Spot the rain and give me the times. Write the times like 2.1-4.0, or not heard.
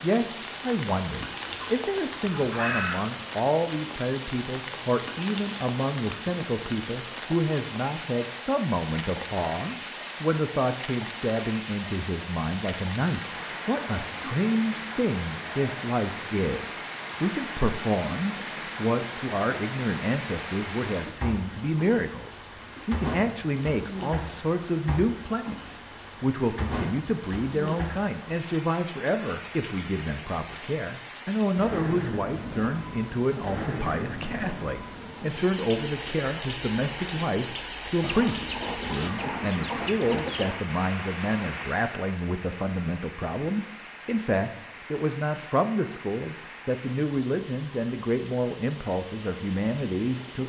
0.0-50.4.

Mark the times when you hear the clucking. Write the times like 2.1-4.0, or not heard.
1.4-3.0, 38.0-40.6.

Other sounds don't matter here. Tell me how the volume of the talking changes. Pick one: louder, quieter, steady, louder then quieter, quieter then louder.
steady.